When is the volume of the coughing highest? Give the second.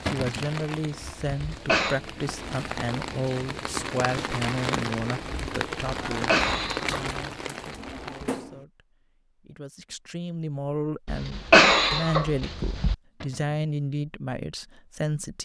12 s.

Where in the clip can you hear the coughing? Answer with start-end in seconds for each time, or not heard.
1.5-2.0, 6.1-7.0, 11.1-12.9.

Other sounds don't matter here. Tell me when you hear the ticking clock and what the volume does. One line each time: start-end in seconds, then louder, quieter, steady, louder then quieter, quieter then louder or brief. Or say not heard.
not heard.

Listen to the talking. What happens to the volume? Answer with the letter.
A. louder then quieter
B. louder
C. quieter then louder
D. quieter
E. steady
C.